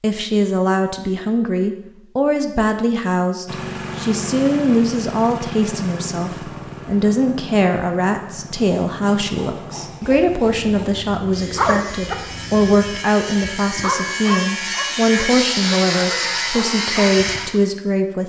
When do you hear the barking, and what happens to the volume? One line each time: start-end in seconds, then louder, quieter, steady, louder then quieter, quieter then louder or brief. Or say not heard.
11.4-12.2 brief
13.3-17.6 quieter.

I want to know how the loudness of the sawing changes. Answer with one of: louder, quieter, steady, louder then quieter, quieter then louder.
louder.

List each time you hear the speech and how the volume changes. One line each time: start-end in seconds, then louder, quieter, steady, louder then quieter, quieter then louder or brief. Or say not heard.
0.0-18.2 steady.